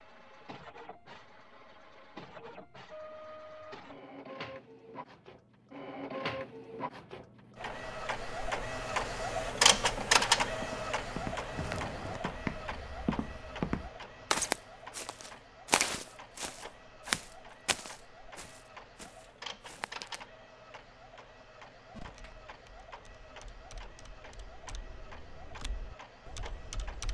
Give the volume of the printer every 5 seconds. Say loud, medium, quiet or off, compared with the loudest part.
quiet, loud, loud, quiet, quiet, quiet.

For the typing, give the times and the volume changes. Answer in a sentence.
The typing can be heard from 21.9 to 27.1 s, getting louder.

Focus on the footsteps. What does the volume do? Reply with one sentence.
The volume of the footsteps goes up, then down.